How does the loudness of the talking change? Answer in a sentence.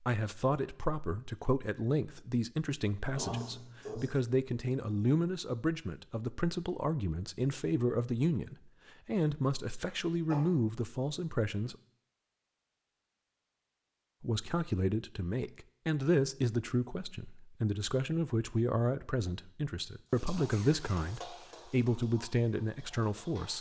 The volume of the talking stays about the same.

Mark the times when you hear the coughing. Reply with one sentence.
You can hear the coughing from 3.1 to 4.2 s, from 9.8 to 10.4 s and from 20.1 to 20.9 s.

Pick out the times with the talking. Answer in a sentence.
You can hear the talking from 0.0 to 11.8 s and from 14.2 to 23.5 s.